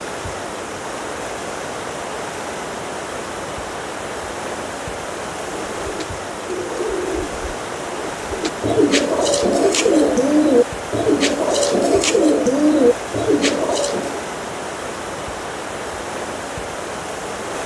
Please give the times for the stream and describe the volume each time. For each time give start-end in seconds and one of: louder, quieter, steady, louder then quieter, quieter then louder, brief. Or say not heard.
0.0-17.6 steady.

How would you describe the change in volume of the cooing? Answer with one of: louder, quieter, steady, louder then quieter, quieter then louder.
louder.